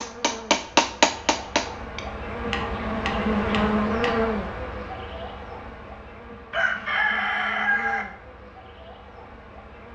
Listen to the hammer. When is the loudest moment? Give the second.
1 s.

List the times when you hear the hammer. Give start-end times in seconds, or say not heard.
0.0-4.3.